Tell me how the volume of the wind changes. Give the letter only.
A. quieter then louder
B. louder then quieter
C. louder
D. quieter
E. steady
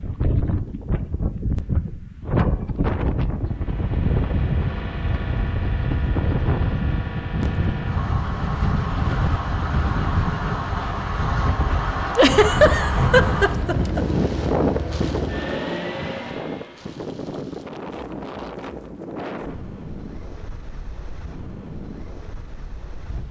D.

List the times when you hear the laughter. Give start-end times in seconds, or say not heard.
12.2-14.1.